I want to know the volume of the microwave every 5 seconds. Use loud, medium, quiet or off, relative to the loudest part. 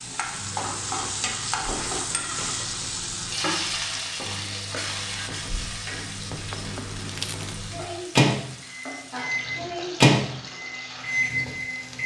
quiet, medium, loud.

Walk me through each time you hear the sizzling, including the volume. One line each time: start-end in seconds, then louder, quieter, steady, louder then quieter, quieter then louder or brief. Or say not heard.
0.0-12.0 quieter.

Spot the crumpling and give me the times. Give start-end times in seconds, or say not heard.
6.5-7.6.